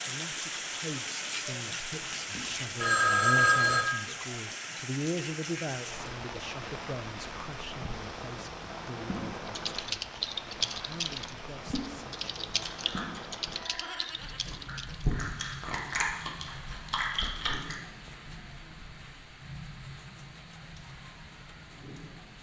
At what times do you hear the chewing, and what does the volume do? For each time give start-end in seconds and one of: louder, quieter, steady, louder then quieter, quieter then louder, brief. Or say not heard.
12.4-17.8 quieter then louder.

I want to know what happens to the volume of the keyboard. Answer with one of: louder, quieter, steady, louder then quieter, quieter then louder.
quieter.